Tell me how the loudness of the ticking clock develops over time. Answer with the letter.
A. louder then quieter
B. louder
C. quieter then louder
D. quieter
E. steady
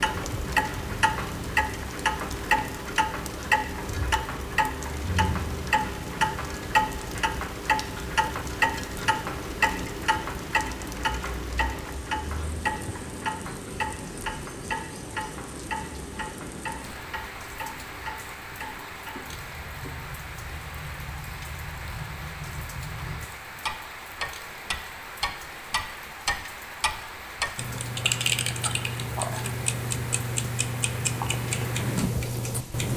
C.